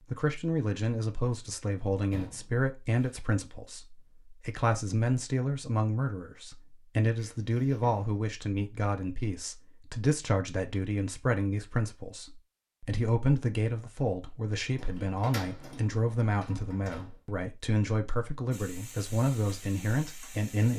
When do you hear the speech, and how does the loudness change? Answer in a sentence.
The speech can be heard from 0.1 to 20.7 s, at a steady volume.